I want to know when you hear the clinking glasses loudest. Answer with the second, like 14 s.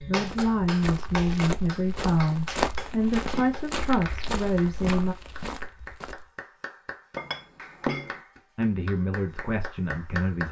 8 s.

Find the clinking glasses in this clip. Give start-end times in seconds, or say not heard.
2.6-3.6, 7.2-8.2.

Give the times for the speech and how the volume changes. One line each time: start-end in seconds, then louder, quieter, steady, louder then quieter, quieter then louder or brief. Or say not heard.
0.0-5.2 steady
8.6-10.4 brief.